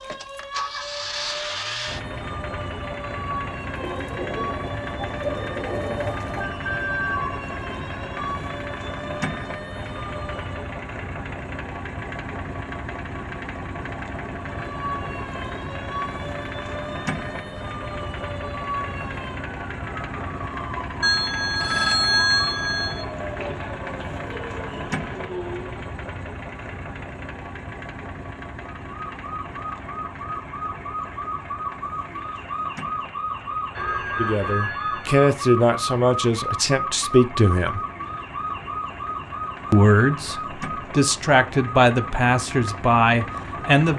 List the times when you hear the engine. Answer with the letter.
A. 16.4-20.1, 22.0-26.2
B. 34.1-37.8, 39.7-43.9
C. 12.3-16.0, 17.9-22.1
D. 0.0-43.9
D.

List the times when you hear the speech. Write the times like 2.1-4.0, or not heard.
34.1-37.8, 39.7-43.9.